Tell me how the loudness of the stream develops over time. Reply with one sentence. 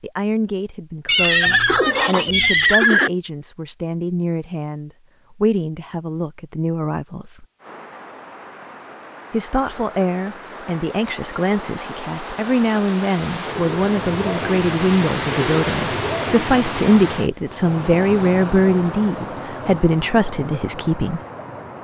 The loudness of the stream goes up, then down.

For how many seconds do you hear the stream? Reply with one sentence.
You can hear the stream for 14 seconds altogether.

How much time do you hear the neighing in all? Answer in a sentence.
You can hear the neighing for 2 seconds altogether.